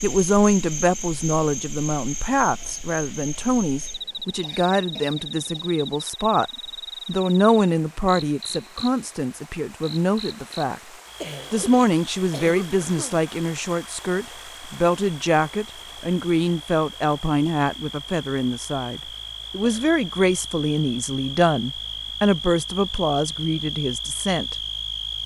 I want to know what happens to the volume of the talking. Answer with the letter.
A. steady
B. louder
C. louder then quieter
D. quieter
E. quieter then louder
A.